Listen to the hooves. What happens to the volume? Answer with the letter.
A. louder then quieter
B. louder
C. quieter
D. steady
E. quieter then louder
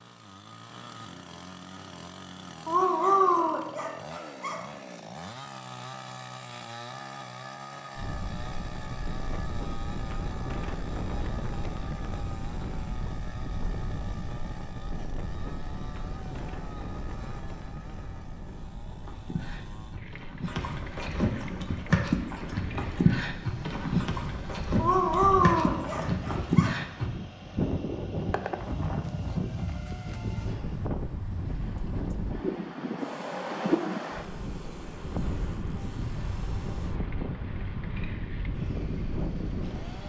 B.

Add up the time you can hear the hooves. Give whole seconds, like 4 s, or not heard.
8 s.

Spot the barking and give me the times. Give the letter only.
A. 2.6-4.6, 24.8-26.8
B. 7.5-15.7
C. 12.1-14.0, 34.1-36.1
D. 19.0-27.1
A.